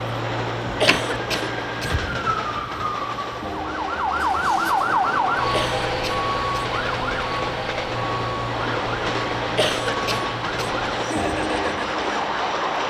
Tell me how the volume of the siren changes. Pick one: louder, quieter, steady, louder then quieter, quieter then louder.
louder then quieter.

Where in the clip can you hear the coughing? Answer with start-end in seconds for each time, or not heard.
0.8-1.9, 5.5-6.7, 9.6-10.7.